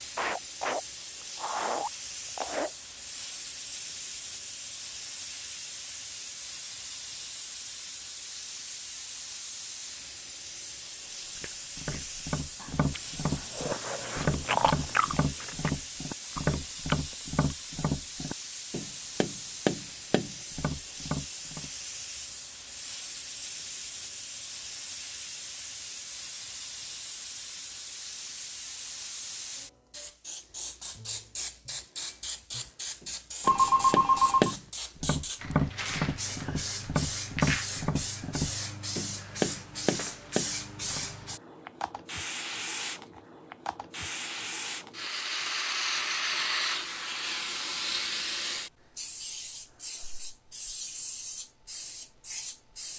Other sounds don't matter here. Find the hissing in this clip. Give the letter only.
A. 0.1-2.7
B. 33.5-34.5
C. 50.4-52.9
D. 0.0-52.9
D.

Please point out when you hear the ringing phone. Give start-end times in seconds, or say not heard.
33.5-34.5.